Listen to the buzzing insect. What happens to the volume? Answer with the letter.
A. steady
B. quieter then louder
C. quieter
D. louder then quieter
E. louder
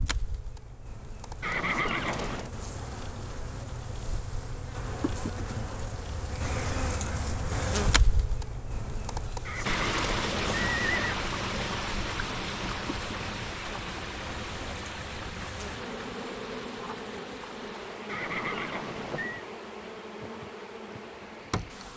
D.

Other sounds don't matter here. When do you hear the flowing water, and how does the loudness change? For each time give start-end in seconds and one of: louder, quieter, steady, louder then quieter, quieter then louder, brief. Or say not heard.
9.6-21.9 quieter.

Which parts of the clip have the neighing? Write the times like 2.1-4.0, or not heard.
1.4-2.5, 9.4-11.2, 18.1-19.4.